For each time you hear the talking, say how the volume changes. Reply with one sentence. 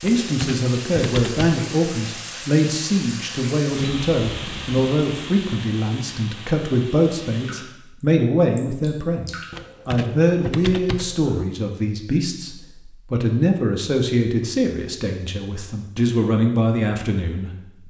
The talking can be heard from 0.0 to 17.5 s, at a steady volume.